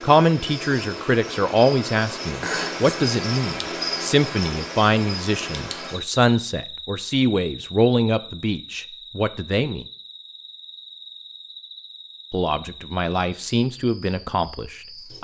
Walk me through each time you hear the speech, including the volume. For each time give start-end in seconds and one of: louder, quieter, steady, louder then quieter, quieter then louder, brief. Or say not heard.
0.0-9.8 steady
12.3-15.2 brief.